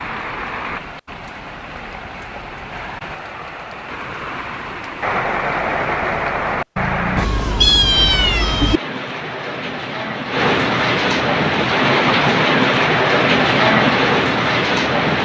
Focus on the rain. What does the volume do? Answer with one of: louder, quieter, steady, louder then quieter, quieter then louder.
louder.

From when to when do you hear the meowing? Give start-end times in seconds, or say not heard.
7.2-8.8.